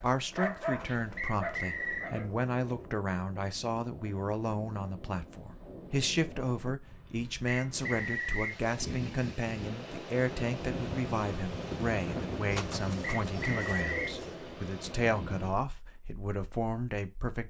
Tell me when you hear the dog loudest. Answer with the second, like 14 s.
1 s.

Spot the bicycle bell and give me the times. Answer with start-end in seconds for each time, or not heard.
not heard.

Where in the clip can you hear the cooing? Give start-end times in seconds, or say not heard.
0.7-2.9, 12.5-14.4.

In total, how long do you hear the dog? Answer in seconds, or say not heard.
2 s.